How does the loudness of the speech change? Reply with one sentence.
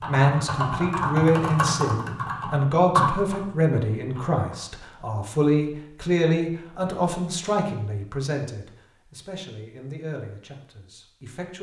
The volume of the speech goes down.